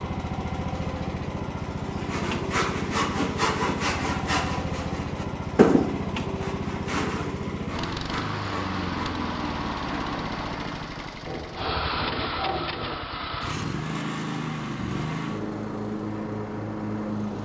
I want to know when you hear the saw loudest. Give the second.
6 s.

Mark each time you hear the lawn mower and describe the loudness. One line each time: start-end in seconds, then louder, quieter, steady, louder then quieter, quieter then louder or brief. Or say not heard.
0.0-17.4 steady.